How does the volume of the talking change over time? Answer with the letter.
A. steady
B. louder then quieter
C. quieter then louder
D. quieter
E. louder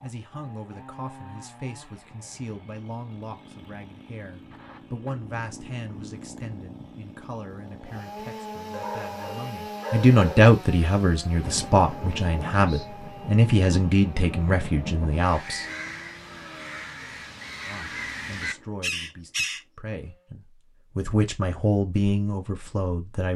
B.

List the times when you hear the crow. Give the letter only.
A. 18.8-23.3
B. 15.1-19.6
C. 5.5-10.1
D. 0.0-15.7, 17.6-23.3
B.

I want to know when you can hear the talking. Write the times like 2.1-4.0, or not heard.
0.0-15.7, 17.6-23.3.